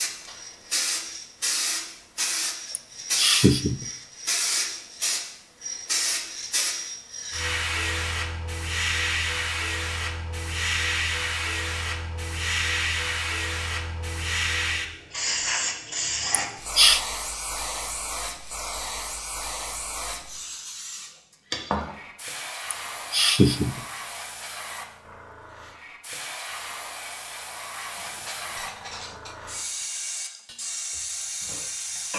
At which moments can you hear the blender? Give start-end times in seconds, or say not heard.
not heard.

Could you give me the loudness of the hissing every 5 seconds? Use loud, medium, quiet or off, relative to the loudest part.
loud, loud, loud, loud, medium, medium, medium.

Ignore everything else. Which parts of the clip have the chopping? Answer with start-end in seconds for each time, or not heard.
not heard.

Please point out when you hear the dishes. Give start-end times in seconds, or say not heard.
27.9-32.1.